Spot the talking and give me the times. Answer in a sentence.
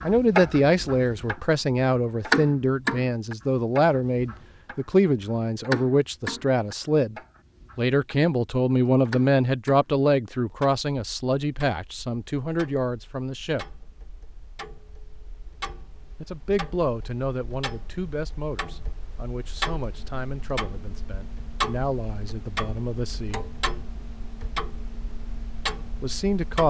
You can hear the talking from 0.0 to 7.2 s, from 7.8 to 13.7 s, from 16.2 to 23.4 s and from 26.0 to 26.6 s.